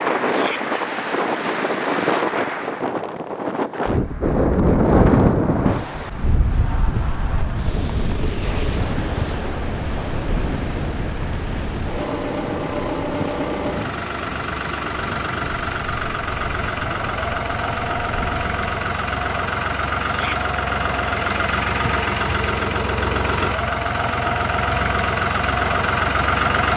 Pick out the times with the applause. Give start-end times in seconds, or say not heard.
0.0-2.9.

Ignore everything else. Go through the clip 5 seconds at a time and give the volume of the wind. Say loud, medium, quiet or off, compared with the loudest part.
loud, loud, medium, quiet, off, off.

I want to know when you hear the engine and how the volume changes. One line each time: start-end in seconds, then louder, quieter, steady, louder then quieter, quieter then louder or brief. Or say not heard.
6.9-26.7 louder.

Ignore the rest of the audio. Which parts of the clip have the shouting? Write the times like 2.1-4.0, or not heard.
0.2-0.7, 20.1-20.5.